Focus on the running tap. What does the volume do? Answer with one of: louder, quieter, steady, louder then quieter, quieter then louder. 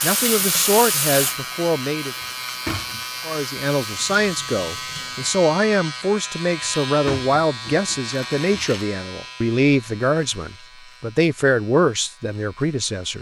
quieter.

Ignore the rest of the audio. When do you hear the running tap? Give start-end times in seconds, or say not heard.
0.0-5.3.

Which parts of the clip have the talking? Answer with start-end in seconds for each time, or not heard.
0.0-2.1, 3.2-13.1.